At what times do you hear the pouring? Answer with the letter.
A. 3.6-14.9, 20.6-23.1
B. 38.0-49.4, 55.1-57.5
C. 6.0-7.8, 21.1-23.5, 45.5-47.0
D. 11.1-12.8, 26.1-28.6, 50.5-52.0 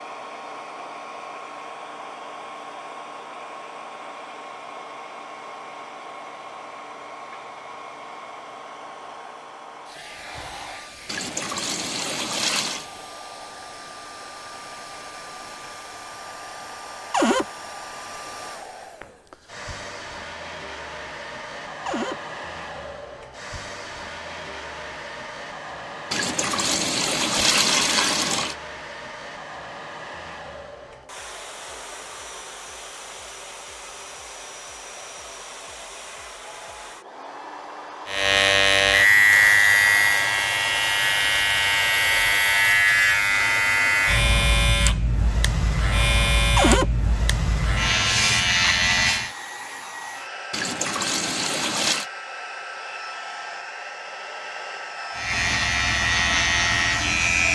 D.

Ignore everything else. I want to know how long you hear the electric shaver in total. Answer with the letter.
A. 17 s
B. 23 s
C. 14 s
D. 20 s
C.